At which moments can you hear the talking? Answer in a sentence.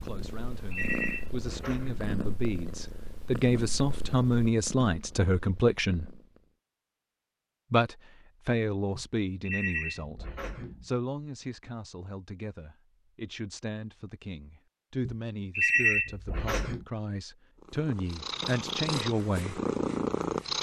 You can hear the talking from 0.0 to 6.1 s and from 7.7 to 19.6 s.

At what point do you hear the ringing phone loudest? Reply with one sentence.
The loudest moment of the ringing phone is at 16 seconds.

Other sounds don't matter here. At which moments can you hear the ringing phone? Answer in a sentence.
The ringing phone can be heard from 0.2 to 2.1 s, from 8.9 to 10.8 s and from 15.1 to 16.9 s.